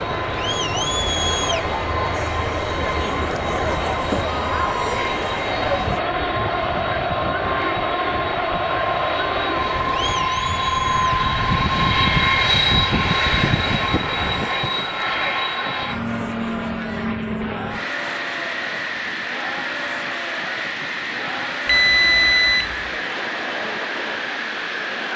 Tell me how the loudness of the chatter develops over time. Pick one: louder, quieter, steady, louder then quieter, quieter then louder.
quieter.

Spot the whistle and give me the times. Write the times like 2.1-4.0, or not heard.
not heard.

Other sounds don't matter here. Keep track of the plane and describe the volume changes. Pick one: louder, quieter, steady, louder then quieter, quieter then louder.
louder then quieter.